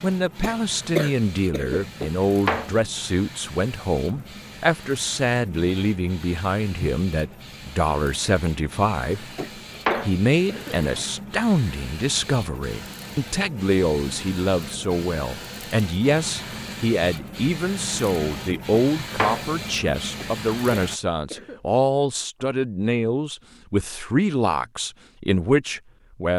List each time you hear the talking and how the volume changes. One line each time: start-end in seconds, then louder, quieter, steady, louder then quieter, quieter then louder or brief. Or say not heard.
0.0-9.2 steady
10.1-26.3 steady.